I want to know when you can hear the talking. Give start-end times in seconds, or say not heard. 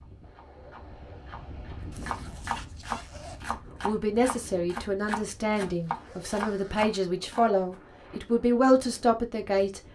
3.8-9.8.